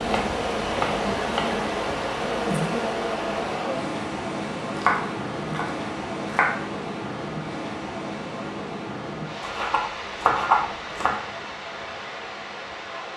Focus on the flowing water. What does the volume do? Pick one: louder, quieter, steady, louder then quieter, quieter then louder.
quieter.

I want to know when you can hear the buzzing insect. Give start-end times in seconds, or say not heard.
0.0-3.6.